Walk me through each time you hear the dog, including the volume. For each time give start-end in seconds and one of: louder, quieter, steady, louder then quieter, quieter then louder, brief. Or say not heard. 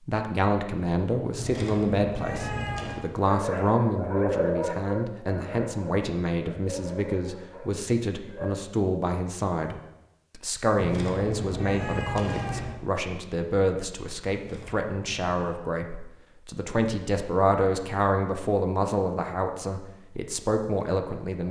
3.2-8.5 quieter.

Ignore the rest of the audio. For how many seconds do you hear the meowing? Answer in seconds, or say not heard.
5 s.